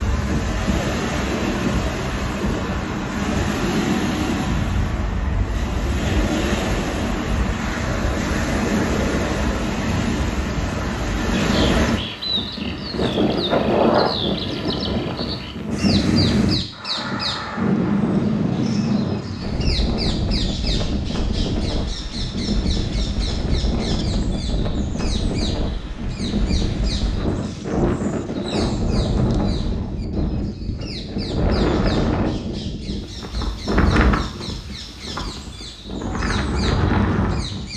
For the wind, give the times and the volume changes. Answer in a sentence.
The wind can be heard from 0.0 to 37.7 s, at a steady volume.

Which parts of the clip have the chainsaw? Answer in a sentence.
The chainsaw can't be heard in this clip.